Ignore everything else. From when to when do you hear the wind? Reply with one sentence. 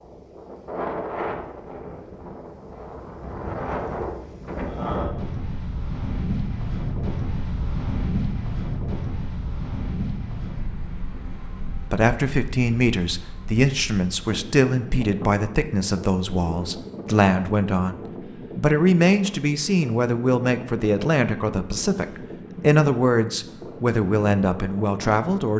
You can hear the wind from 0.0 to 25.5 s.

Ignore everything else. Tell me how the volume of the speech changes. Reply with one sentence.
The volume of the speech stays about the same.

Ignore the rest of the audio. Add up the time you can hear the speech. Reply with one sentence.
You can hear the speech for 14 seconds altogether.